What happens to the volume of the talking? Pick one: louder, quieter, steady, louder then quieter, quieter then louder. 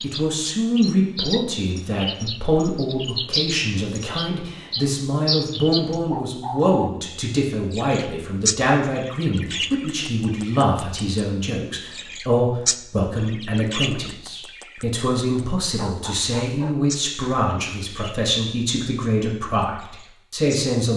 steady.